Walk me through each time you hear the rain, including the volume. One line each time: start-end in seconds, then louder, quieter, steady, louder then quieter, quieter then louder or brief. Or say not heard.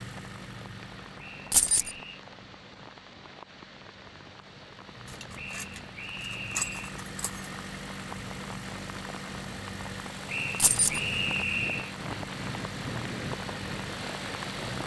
0.0-14.8 louder.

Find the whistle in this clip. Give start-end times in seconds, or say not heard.
1.1-2.2, 5.3-7.0, 10.2-11.9.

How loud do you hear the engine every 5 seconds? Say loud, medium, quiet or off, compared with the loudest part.
medium, loud, loud.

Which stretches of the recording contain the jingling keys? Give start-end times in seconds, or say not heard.
1.5-1.9, 5.0-7.5, 10.6-11.0.